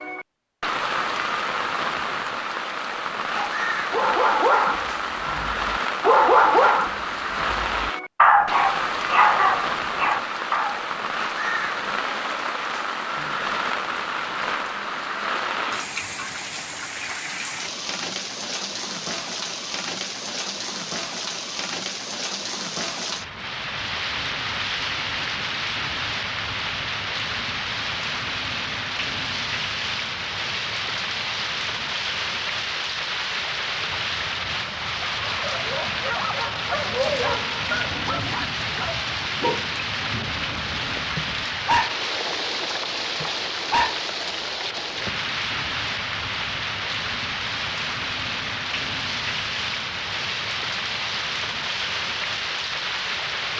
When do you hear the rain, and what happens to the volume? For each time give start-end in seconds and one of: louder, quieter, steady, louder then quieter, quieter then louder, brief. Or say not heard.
0.0-53.5 steady.